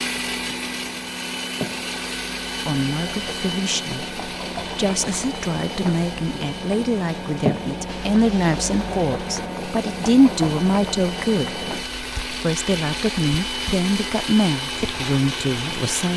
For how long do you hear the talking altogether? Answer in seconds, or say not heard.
13 s.